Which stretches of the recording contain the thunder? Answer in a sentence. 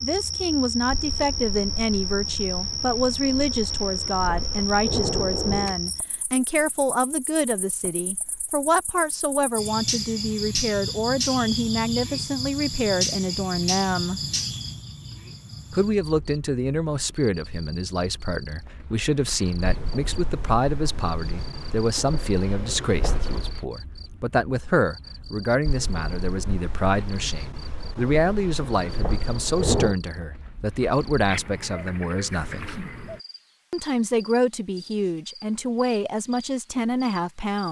You can hear the thunder from 0.9 to 5.8 s, from 19.6 to 23.6 s and from 25.6 to 29.9 s.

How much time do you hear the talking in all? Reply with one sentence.
The talking can be heard for 35 seconds in total.